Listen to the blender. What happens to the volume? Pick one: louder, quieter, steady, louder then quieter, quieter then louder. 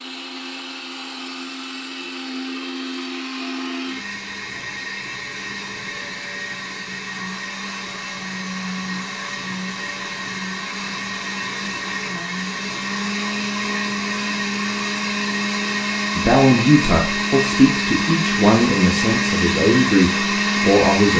louder.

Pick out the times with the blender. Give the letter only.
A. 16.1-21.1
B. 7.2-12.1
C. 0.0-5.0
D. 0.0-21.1
D.